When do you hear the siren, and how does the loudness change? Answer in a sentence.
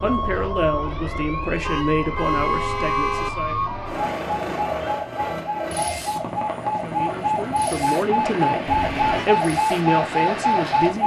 You can hear the siren from 0.0 to 11.0 s, getting louder.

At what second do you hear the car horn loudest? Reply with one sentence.
The volume of the car horn peaks at 3 seconds.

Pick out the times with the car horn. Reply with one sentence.
You can hear the car horn from 1.6 to 3.3 s and from 8.7 to 9.3 s.